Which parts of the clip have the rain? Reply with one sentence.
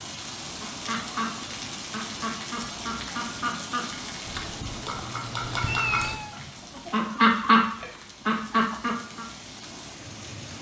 The rain can be heard from 0.0 to 10.5 s.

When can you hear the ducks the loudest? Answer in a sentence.
The volume of the ducks peaks at 7 seconds.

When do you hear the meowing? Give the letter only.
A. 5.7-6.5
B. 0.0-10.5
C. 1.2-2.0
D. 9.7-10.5
A.